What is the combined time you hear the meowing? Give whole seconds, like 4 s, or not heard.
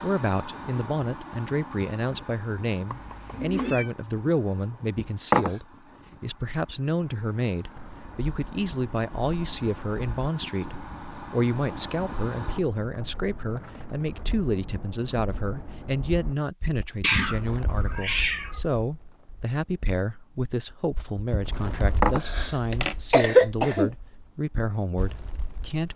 3 s.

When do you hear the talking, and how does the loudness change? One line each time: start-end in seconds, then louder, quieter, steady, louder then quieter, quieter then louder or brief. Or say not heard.
0.0-25.9 steady.